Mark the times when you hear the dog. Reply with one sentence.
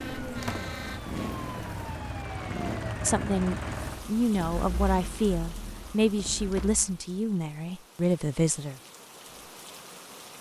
You can't hear the dog here.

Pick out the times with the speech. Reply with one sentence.
The speech can be heard from 3.0 to 8.8 s.